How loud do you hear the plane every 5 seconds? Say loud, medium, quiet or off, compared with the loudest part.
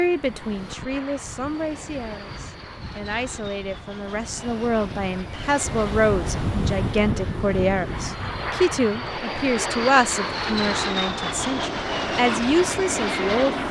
quiet, medium, loud.